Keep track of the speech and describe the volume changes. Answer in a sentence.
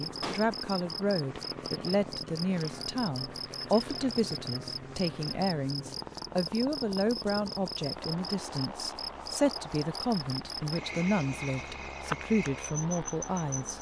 The volume of the speech stays about the same.